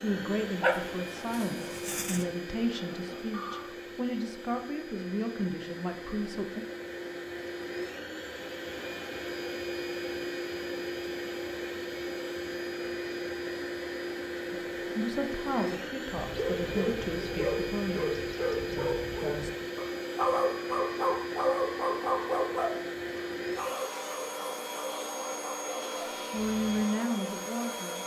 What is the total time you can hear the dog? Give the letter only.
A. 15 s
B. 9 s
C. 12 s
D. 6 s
C.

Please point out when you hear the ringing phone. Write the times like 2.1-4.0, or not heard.
2.5-3.7.